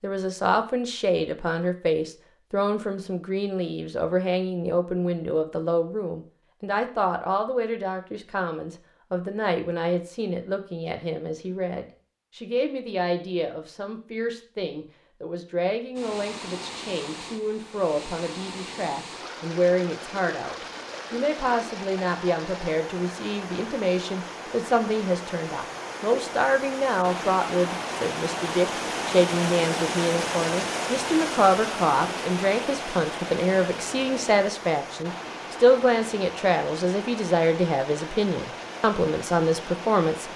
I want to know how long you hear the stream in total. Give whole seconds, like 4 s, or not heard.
24 s.